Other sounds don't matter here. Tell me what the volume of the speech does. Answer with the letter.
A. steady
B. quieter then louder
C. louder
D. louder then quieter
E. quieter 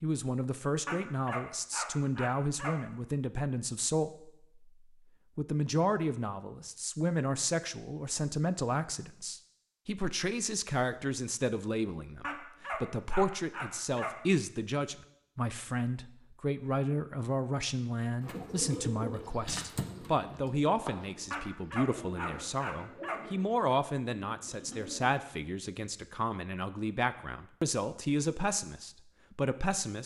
A.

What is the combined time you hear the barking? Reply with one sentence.
You can hear the barking for 6 seconds altogether.